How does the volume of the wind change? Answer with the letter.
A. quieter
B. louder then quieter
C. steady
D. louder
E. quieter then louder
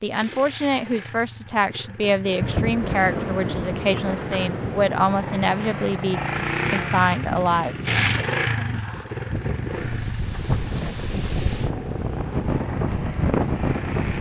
E.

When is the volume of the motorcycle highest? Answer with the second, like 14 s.
8 s.